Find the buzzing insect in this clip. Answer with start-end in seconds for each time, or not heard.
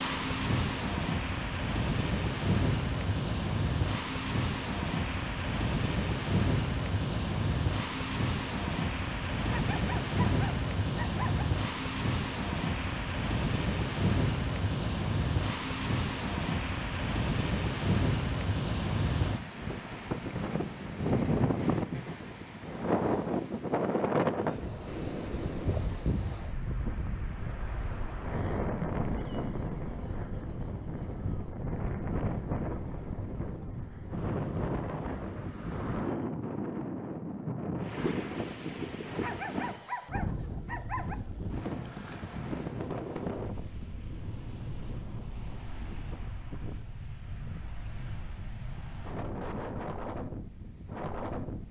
not heard.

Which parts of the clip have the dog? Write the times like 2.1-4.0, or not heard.
9.4-11.4, 39.2-41.1.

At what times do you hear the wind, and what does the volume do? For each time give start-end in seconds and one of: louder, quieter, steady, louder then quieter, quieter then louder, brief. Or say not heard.
0.0-51.6 quieter.